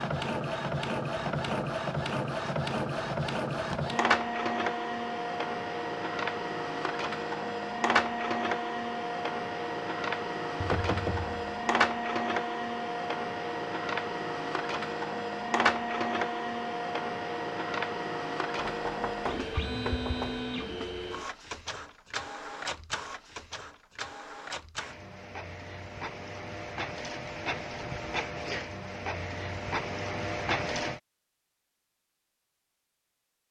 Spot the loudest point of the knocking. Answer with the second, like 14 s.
11 s.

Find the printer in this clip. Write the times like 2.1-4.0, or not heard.
0.0-31.0.